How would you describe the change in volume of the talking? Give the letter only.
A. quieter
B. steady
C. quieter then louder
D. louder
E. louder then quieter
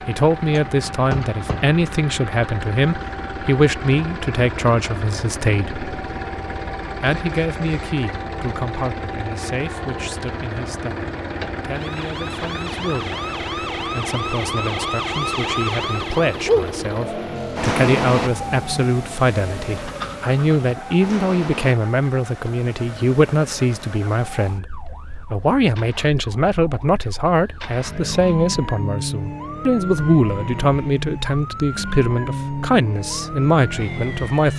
C.